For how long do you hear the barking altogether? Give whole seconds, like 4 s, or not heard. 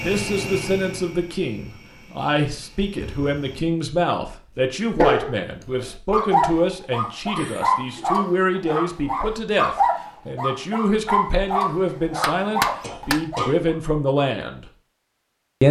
9 s.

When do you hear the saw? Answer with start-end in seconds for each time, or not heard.
not heard.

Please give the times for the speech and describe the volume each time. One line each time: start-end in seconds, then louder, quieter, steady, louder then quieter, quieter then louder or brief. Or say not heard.
0.0-14.7 steady.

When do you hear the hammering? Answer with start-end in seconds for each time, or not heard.
11.9-13.2.